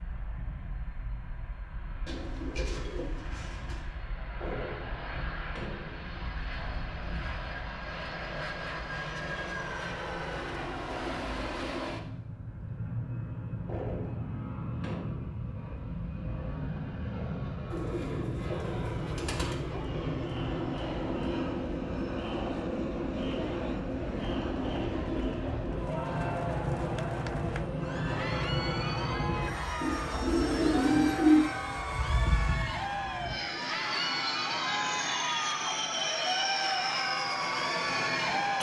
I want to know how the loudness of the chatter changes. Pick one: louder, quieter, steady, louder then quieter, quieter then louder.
louder.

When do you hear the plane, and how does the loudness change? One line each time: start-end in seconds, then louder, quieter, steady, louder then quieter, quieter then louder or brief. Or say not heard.
0.0-38.5 louder.